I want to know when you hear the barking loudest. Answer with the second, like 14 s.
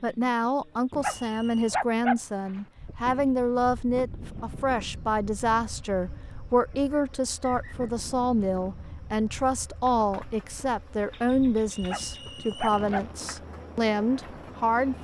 2 s.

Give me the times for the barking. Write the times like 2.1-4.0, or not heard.
1.0-2.6, 11.8-13.1.